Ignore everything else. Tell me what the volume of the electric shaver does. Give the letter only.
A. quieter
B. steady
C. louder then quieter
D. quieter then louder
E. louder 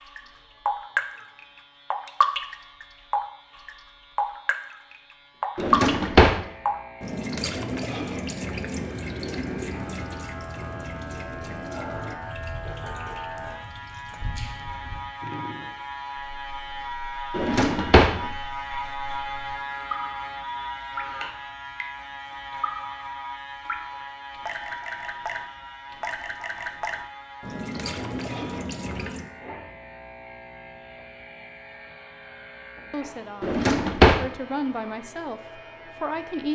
C.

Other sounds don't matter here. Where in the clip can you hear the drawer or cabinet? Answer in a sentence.
You can hear the drawer or cabinet from 5.5 to 6.4 s, from 17.4 to 18.1 s and from 33.4 to 34.2 s.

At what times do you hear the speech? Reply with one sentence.
The speech can be heard from 32.9 to 36.5 s.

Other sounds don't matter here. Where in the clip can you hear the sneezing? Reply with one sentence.
The sneezing can't be heard in this clip.